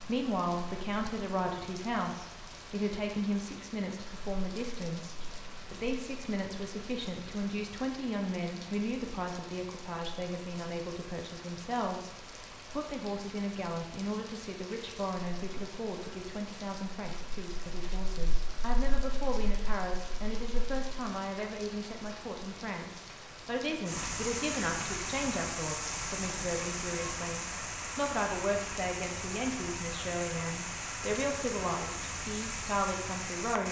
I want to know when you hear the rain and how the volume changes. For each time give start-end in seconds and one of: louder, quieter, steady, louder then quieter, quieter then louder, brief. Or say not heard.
0.0-33.6 louder.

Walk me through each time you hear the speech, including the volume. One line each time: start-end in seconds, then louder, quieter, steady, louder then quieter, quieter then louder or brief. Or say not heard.
0.0-33.6 steady.